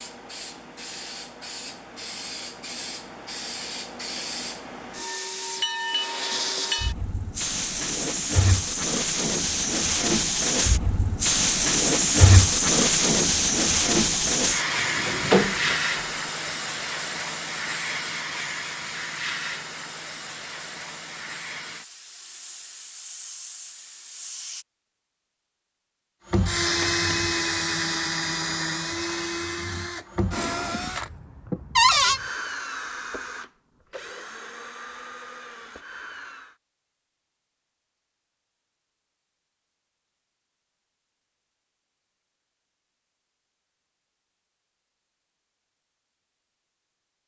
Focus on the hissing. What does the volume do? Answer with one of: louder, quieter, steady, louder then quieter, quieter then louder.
louder then quieter.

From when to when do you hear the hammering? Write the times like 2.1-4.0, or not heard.
not heard.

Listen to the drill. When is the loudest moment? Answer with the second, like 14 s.
27 s.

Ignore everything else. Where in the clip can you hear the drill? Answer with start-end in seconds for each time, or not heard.
26.3-36.5.